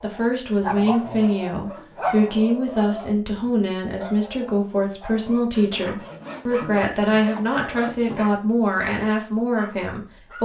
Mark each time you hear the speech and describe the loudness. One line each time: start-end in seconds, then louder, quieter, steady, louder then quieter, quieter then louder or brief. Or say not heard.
0.0-10.4 steady.